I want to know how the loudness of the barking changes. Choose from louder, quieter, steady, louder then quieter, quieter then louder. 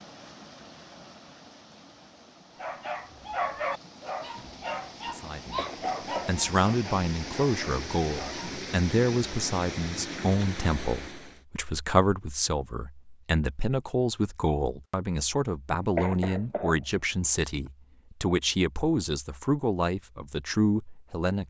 quieter.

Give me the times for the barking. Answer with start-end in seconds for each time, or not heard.
2.5-8.6.